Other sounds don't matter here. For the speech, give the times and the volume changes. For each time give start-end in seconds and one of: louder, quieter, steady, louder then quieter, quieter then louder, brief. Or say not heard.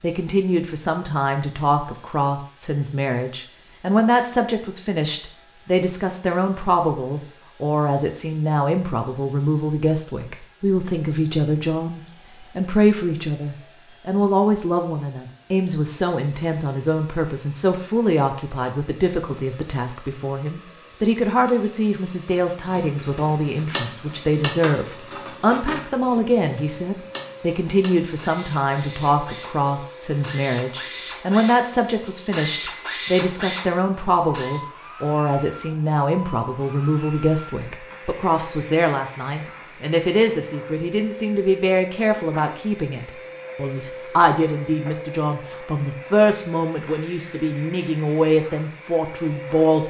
0.0-49.8 steady.